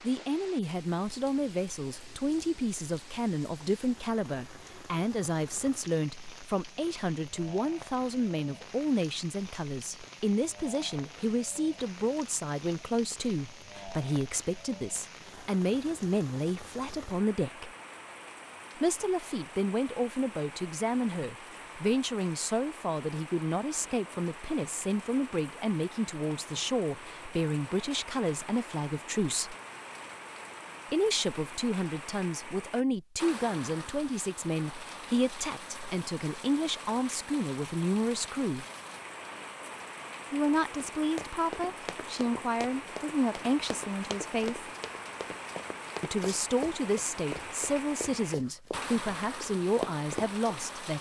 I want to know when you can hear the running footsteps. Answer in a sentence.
The running footsteps can be heard from 41.0 to 50.4 s.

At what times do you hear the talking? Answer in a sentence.
The talking can be heard from 0.0 to 17.7 s, from 18.8 to 29.6 s, from 30.9 to 38.6 s, from 40.3 to 44.7 s and from 46.0 to 50.9 s.